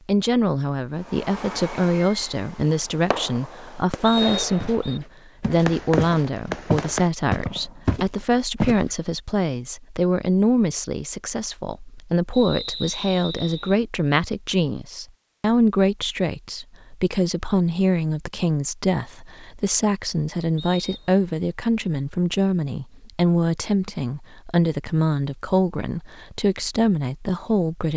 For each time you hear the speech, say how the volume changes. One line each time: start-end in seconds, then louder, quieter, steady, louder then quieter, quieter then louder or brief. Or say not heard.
0.1-27.9 steady.